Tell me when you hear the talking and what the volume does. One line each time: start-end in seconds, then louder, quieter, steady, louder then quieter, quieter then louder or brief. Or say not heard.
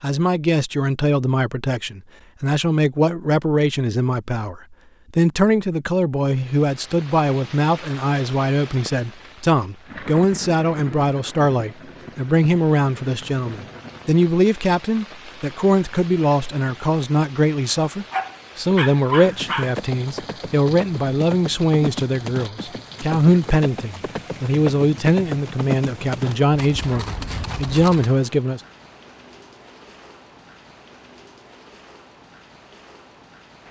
0.0-28.6 steady.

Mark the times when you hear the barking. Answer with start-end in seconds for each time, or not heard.
18.1-19.8.